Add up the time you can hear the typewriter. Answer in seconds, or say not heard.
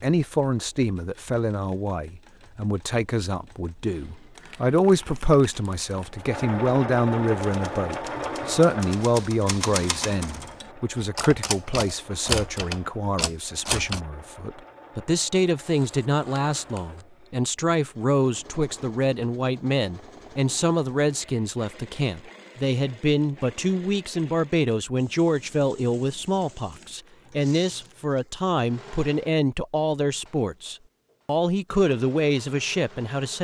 7 s.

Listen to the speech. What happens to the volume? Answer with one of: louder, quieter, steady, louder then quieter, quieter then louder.
steady.